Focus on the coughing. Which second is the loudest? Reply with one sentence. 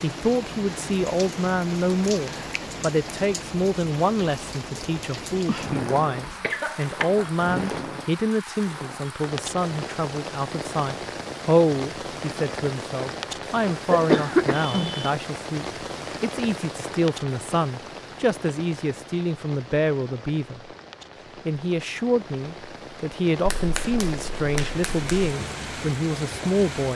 The loudest moment of the coughing is at 14 seconds.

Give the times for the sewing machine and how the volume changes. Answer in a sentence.
You can't hear the sewing machine here.